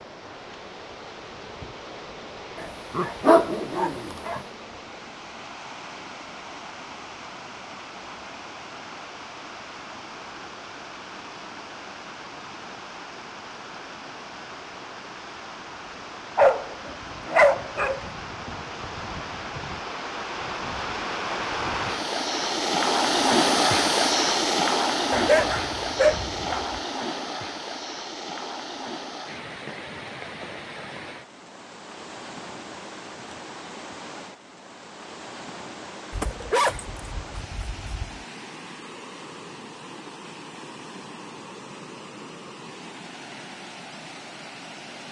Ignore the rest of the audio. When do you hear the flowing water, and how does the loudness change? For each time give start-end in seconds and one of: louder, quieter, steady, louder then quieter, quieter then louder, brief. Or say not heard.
0.0-45.0 louder then quieter.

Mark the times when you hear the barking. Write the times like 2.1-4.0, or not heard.
2.6-4.4, 16.4-18.0, 25.1-26.8, 36.1-38.2.